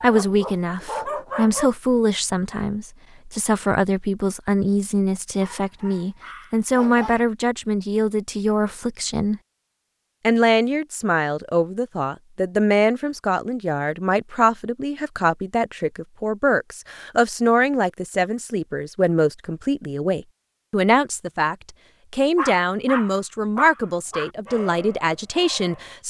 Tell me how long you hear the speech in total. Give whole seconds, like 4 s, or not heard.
25 s.